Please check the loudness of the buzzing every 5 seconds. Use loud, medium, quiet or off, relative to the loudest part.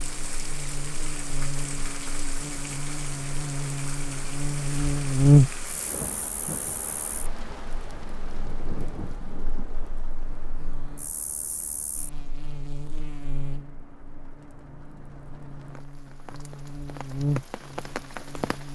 quiet, loud, quiet, quiet.